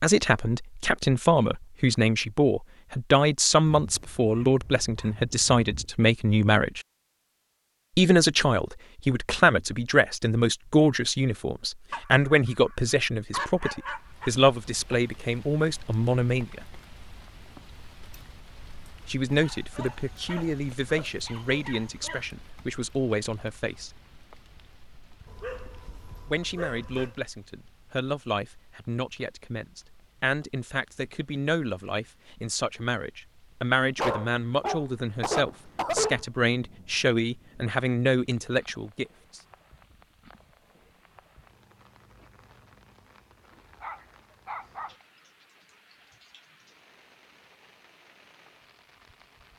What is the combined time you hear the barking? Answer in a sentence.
You can hear the barking for 13 seconds altogether.